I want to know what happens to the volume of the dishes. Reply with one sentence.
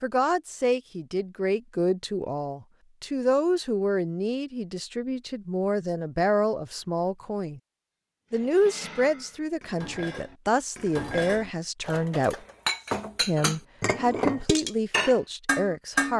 The loudness of the dishes goes up.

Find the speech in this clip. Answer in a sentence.
The speech can be heard from 0.0 to 7.6 s, from 8.3 to 12.3 s and from 13.2 to 16.1 s.